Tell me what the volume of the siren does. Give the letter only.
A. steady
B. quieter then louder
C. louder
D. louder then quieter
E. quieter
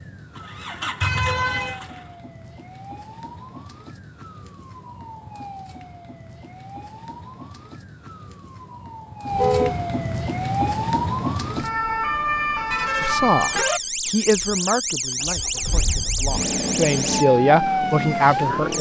C.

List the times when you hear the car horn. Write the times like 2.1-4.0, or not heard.
1.0-1.8, 9.3-9.8, 12.7-13.8.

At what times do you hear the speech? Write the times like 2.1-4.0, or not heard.
13.0-18.7.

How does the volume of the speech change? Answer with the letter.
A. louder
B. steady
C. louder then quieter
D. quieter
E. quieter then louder
E.